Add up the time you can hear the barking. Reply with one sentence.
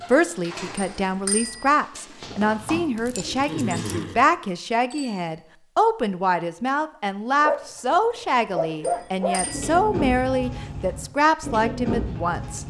The barking can be heard for 3 seconds in total.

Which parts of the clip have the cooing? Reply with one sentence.
The cooing can be heard from 0.0 to 4.2 s and from 9.3 to 12.6 s.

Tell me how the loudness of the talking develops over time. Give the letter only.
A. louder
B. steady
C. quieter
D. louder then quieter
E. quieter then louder
B.